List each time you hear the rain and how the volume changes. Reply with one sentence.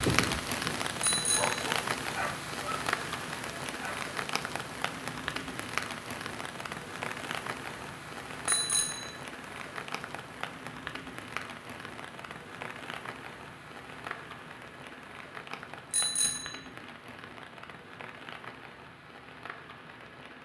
The rain can be heard from 0.0 to 20.4 s, getting quieter.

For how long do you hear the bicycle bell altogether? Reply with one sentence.
You can hear the bicycle bell for 2 seconds altogether.